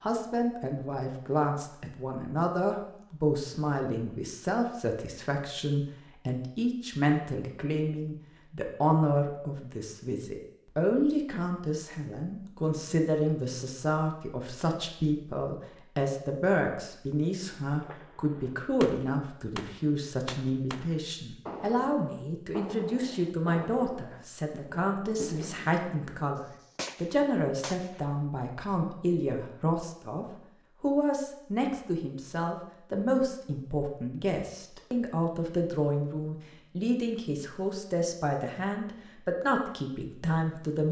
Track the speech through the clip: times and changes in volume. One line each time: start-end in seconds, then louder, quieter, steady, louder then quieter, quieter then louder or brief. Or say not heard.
0.0-40.8 steady.